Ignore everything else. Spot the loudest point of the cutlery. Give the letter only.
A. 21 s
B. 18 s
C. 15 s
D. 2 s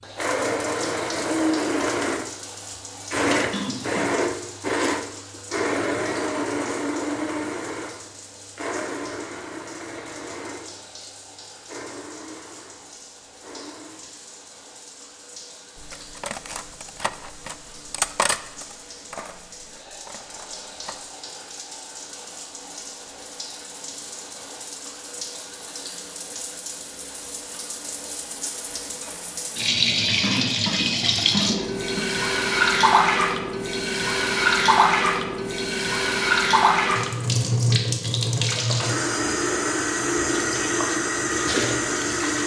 B.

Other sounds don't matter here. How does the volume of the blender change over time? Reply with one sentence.
The volume of the blender goes down.